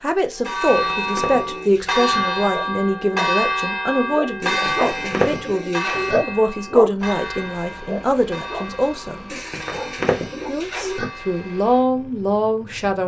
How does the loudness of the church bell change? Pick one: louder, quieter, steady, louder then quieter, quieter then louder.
quieter.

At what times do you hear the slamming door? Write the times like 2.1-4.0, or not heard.
not heard.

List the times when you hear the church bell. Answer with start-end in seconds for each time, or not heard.
0.3-11.8.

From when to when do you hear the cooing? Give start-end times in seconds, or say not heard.
0.4-2.2, 4.4-6.2, 9.3-11.1.